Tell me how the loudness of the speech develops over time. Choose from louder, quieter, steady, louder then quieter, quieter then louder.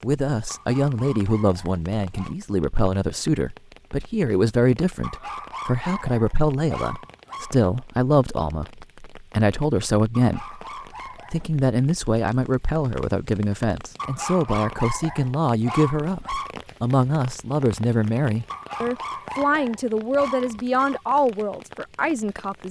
steady.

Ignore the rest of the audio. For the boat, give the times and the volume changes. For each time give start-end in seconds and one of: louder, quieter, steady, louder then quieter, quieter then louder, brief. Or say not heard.
not heard.